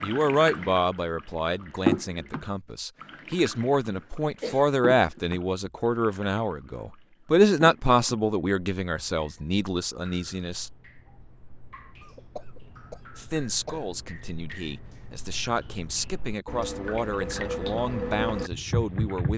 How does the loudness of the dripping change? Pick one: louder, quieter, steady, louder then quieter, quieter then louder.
quieter then louder.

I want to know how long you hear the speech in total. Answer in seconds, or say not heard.
17 s.